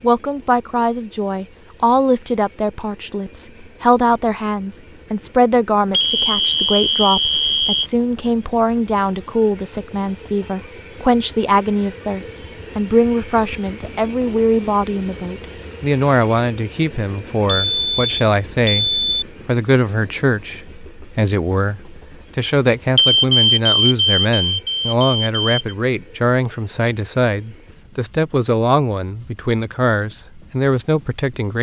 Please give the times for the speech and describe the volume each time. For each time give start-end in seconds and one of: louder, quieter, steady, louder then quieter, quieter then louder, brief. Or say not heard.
0.0-31.5 steady.